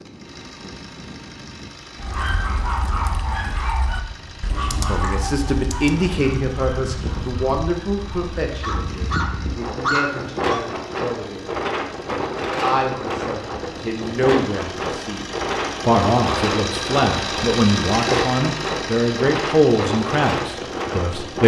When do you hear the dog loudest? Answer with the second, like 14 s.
10 s.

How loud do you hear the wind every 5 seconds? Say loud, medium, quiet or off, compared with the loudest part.
quiet, medium, loud, loud, loud.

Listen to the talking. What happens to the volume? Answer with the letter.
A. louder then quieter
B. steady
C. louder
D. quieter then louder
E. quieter
D.